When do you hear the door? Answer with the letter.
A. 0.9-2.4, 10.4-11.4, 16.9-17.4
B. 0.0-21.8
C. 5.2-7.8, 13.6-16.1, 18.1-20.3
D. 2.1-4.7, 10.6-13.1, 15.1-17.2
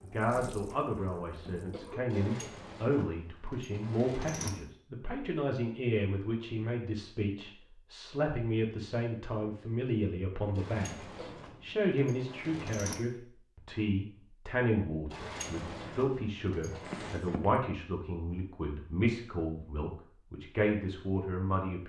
D.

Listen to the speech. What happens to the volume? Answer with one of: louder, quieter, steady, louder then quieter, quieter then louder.
steady.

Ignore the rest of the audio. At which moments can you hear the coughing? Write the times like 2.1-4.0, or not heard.
0.9-2.4, 10.4-11.4, 16.9-17.4.